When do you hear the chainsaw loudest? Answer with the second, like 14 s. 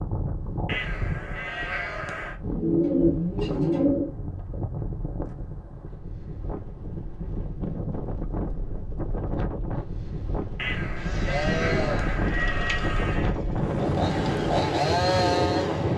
15 s.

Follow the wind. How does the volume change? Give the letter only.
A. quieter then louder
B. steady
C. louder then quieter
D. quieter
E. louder
E.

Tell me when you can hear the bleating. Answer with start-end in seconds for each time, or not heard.
0.7-2.4, 10.6-13.3.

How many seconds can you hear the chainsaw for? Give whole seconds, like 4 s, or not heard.
5 s.